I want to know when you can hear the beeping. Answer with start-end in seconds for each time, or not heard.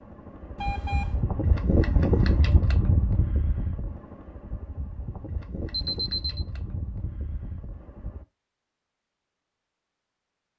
0.6-1.1, 5.7-6.5.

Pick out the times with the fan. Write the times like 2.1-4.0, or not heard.
0.0-8.2.